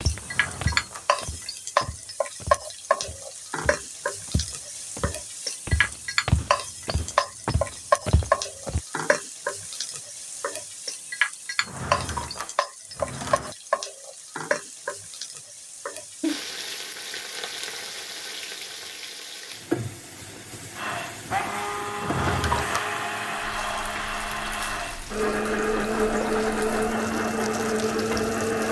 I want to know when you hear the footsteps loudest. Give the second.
6 s.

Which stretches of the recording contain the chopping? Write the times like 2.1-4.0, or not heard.
not heard.